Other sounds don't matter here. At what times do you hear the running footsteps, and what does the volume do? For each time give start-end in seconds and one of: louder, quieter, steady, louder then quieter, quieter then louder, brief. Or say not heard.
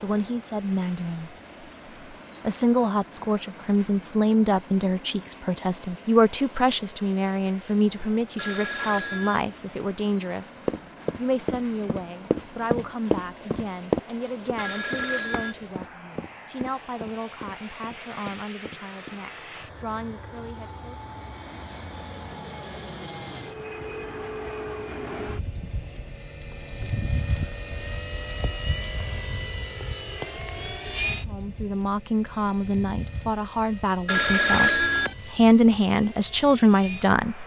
10.7-19.1 louder then quieter.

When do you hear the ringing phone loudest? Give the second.
35 s.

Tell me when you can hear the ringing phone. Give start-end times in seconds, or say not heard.
8.3-9.4, 14.6-15.6, 34.0-35.1.